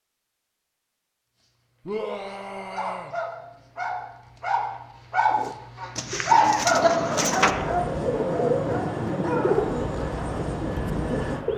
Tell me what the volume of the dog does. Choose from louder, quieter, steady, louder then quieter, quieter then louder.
louder then quieter.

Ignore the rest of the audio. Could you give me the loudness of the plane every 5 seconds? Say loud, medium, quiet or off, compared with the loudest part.
off, loud, loud.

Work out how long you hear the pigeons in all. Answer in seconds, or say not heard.
6 s.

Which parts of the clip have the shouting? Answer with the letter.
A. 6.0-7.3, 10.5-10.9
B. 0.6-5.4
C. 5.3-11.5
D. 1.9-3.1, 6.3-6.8
D.